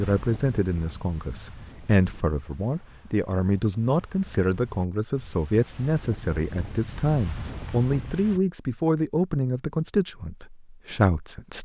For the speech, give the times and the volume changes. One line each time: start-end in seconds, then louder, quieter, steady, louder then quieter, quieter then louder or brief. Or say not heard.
0.0-11.5 steady.